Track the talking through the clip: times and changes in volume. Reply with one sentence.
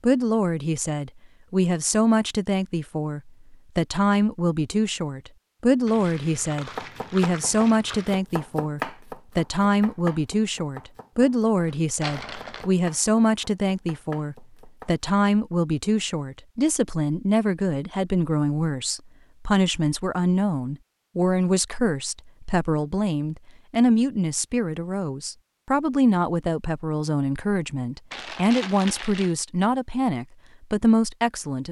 The talking can be heard from 0.0 to 31.6 s, at a steady volume.